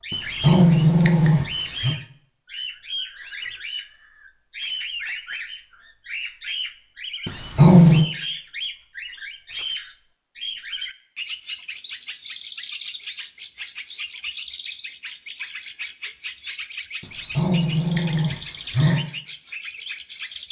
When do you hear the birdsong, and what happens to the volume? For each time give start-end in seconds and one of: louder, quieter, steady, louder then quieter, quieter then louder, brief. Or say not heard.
0.0-20.4 steady.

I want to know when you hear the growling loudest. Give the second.
8 s.